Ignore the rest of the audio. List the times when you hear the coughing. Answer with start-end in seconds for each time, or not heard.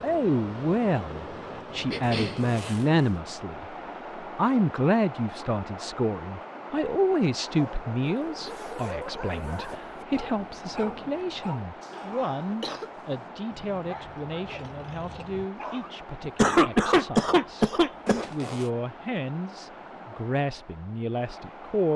1.9-2.4, 11.9-12.9, 16.2-18.2.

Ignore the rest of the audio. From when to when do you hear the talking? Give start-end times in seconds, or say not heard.
0.0-21.9.